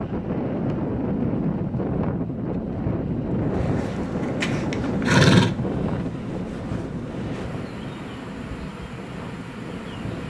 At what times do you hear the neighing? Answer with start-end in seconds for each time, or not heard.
3.5-5.5.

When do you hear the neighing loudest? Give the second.
5 s.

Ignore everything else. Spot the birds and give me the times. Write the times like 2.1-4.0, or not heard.
not heard.